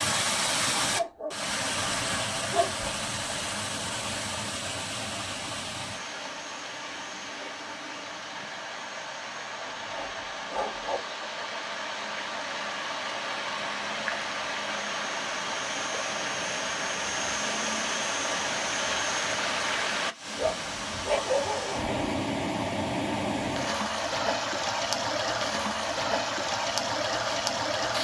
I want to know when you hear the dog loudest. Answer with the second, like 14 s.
21 s.